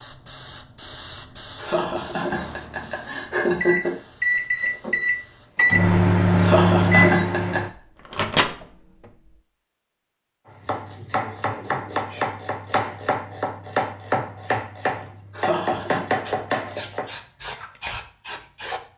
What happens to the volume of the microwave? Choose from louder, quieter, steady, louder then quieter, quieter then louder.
louder then quieter.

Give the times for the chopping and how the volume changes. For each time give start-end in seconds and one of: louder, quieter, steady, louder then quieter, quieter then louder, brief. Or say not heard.
10.4-17.1 steady.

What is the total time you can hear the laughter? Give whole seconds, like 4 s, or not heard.
4 s.